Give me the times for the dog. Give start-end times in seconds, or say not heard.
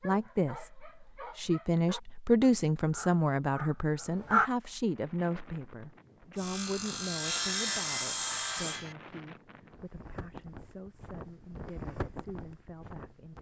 0.0-4.5.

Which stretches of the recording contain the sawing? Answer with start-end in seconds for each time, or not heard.
6.3-8.9.